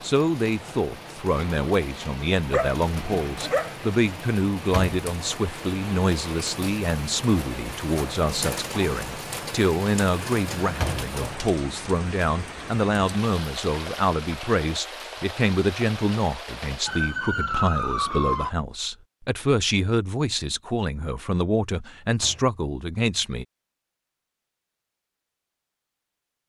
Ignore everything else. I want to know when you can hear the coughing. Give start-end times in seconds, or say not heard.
not heard.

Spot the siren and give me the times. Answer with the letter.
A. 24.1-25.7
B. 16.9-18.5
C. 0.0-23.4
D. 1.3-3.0
B.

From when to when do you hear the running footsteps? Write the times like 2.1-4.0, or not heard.
not heard.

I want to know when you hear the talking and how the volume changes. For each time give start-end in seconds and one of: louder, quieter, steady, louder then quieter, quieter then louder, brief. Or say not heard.
0.0-23.4 steady.